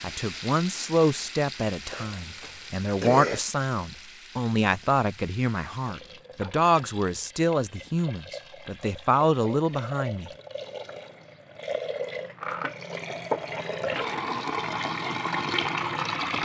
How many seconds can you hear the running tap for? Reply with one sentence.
You can hear the running tap for 16 seconds altogether.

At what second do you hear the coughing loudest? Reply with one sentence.
The loudest moment of the coughing is at 3 seconds.